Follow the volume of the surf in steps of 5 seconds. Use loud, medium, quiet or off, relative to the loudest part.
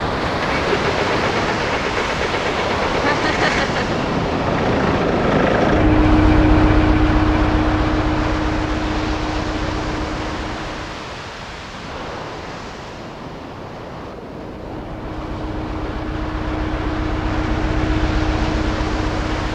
loud, loud, medium, medium.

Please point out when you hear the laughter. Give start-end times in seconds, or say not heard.
3.0-4.0.